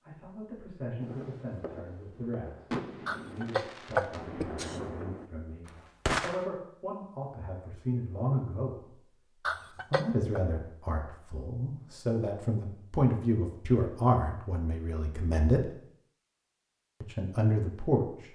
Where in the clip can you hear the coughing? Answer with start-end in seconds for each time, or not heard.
3.0-4.8, 9.4-10.4.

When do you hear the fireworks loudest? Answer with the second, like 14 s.
6 s.